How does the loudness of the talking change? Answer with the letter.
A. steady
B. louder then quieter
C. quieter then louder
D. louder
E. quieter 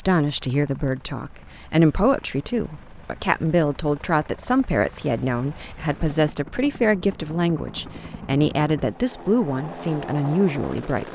A.